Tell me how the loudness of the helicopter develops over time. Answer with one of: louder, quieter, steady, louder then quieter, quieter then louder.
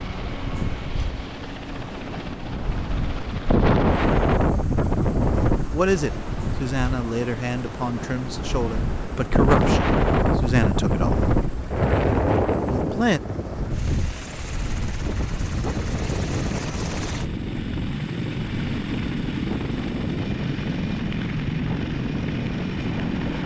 louder.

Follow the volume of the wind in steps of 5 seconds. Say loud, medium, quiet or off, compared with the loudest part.
loud, loud, loud, medium, medium.